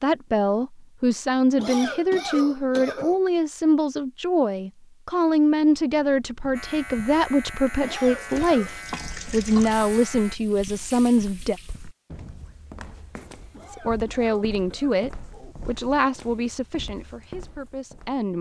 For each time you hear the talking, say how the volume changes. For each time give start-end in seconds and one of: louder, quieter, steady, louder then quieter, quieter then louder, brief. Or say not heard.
0.0-11.6 steady
13.7-18.3 quieter.